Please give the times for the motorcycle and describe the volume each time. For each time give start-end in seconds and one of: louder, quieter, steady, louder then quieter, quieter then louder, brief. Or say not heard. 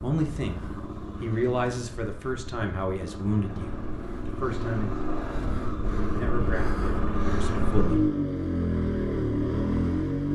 0.0-10.3 louder.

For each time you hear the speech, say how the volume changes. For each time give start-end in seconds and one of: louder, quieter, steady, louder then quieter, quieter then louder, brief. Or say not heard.
0.0-0.6 brief
1.2-5.2 quieter then louder
6.0-8.1 brief.